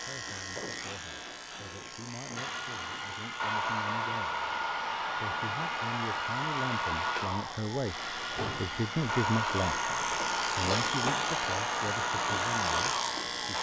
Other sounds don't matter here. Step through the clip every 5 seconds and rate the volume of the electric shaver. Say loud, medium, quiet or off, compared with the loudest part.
medium, medium, loud.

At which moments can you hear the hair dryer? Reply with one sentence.
The hair dryer can be heard from 2.4 to 13.5 s.